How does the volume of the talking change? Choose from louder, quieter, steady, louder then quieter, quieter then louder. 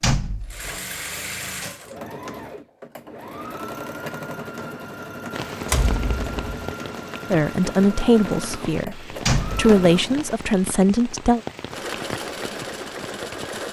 quieter then louder.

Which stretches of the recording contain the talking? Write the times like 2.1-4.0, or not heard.
7.3-11.4.